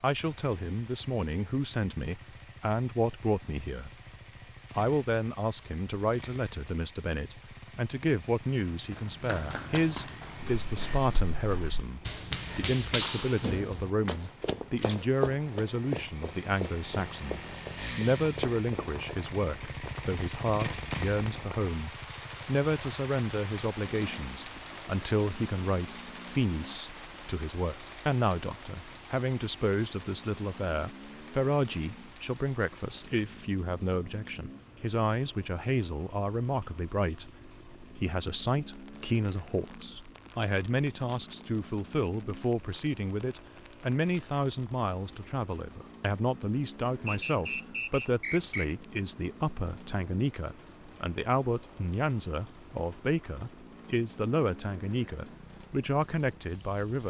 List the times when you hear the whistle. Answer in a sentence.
You can hear the whistle from 47.0 to 48.7 s.